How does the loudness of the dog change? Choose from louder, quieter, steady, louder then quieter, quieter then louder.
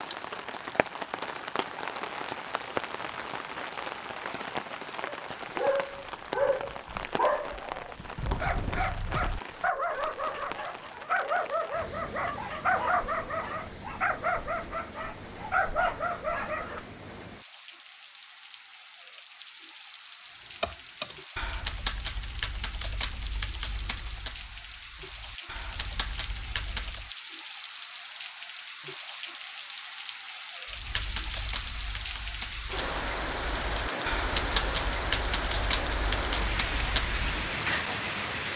steady.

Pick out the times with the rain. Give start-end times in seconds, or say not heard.
0.0-38.5.